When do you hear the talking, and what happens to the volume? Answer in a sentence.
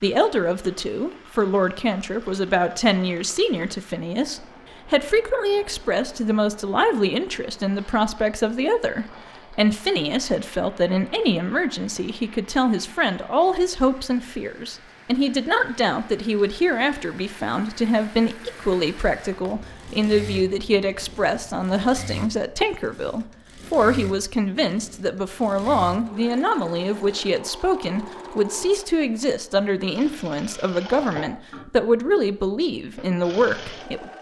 You can hear the talking from 0.0 to 34.1 s, at a steady volume.